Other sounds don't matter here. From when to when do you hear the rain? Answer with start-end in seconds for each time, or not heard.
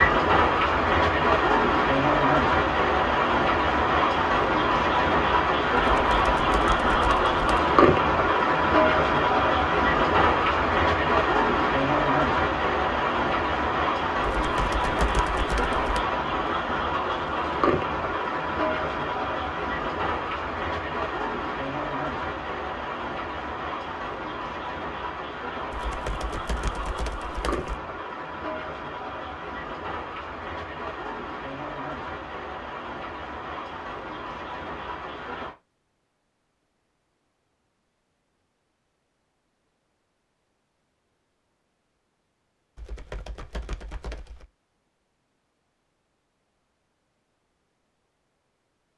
0.0-35.5.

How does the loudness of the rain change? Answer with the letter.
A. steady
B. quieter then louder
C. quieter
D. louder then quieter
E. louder
C.